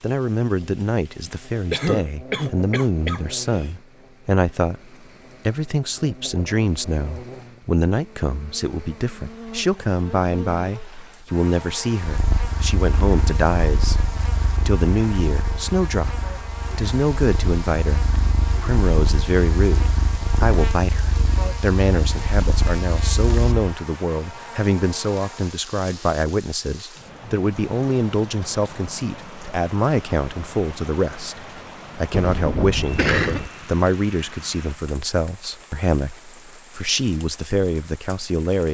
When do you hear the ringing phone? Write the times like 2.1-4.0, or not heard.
not heard.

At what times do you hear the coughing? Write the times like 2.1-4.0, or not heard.
1.2-3.6, 32.1-33.5.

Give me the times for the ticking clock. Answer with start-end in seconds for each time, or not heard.
not heard.